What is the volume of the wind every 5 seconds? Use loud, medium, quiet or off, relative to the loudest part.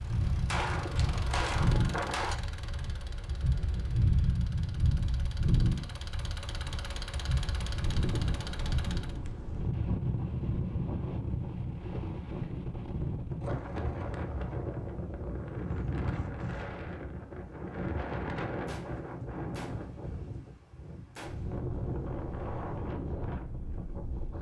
loud, loud, loud, loud, medium.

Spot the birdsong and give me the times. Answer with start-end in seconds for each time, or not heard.
not heard.